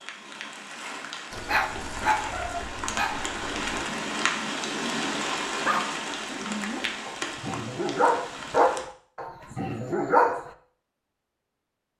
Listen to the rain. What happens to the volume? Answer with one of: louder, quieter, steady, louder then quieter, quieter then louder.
louder then quieter.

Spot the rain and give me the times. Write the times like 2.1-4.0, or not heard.
0.0-8.8.